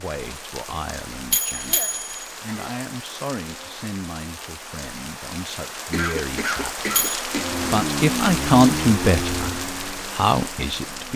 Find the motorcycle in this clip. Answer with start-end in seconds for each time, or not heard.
7.3-11.1.